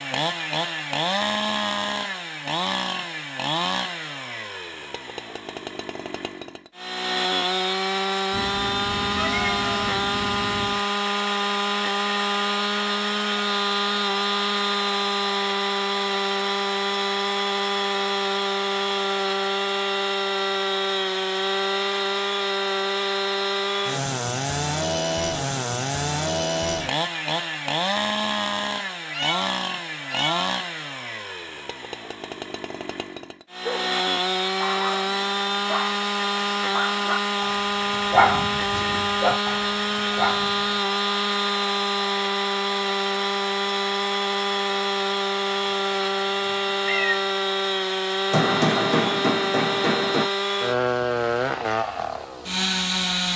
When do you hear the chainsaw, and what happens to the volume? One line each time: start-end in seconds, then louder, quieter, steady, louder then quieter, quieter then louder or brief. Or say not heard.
0.0-53.3 steady.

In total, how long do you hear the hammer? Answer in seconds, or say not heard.
2 s.